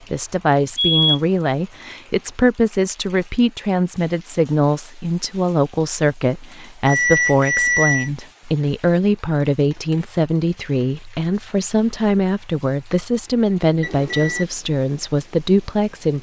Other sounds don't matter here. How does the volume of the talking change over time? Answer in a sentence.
The loudness of the talking stays about the same.